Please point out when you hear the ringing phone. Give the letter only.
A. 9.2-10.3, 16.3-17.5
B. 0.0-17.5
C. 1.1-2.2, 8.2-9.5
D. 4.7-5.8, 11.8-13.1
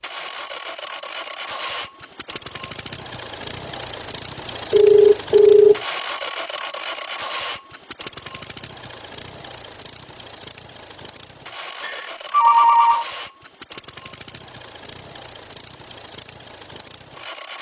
D.